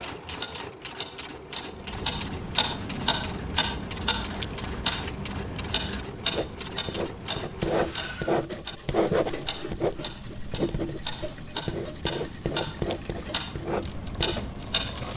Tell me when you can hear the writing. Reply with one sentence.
The writing can be heard from 2.8 to 14.4 s.